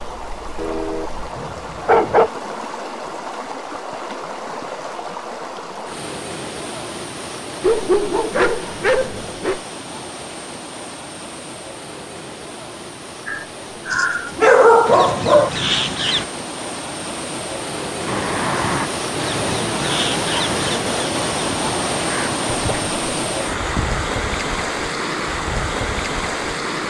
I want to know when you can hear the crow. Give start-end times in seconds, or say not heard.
13.2-16.2, 18.1-22.5.